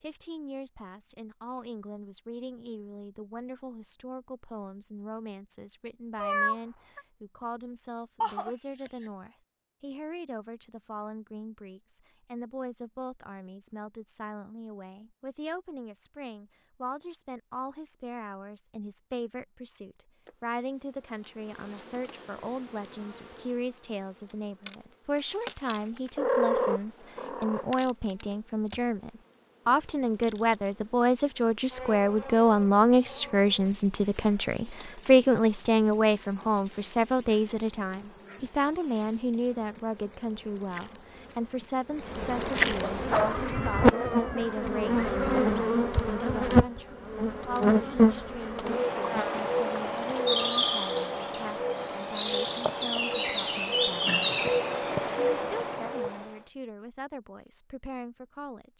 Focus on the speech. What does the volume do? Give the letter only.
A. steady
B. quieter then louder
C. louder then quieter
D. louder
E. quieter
C.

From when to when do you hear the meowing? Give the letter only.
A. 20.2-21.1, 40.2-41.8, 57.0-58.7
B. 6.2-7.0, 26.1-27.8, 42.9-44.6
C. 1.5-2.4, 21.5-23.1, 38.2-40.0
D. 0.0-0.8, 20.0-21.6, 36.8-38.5
B.